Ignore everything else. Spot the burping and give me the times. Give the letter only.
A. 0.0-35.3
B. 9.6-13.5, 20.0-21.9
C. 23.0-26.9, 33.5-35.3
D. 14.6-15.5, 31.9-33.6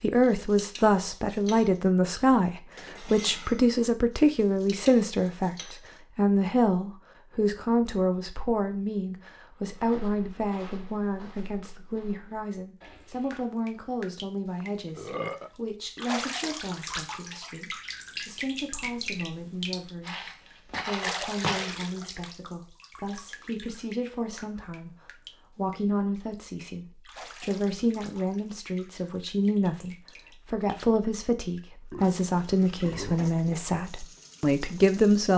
D.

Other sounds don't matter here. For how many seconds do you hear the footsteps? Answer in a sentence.
You can hear the footsteps for 6 seconds altogether.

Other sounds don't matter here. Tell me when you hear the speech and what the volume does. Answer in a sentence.
The speech can be heard from 0.0 to 35.3 s, getting quieter then louder.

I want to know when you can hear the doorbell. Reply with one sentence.
You can't hear the doorbell here.